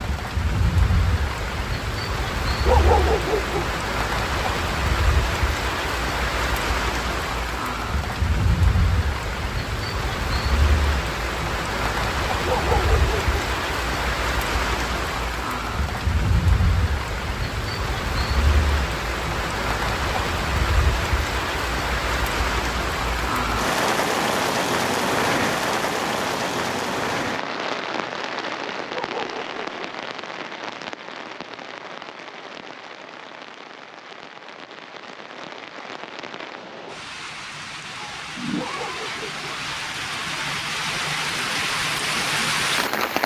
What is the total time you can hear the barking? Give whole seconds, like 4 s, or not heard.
4 s.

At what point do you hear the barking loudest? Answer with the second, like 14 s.
3 s.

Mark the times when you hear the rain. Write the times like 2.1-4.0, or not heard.
0.0-43.2.